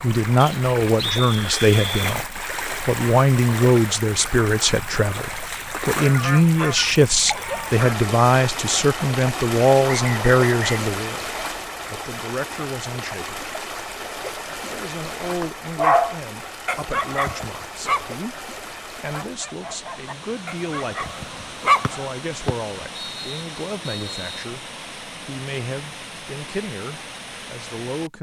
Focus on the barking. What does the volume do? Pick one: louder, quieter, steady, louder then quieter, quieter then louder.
quieter then louder.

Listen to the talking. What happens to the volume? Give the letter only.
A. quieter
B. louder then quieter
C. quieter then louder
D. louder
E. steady
A.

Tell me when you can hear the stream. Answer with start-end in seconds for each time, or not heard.
0.0-28.1.